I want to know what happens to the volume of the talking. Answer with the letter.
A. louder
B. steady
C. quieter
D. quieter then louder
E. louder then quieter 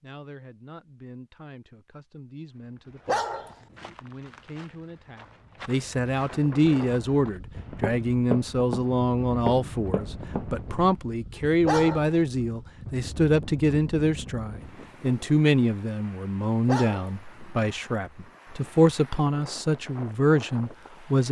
A.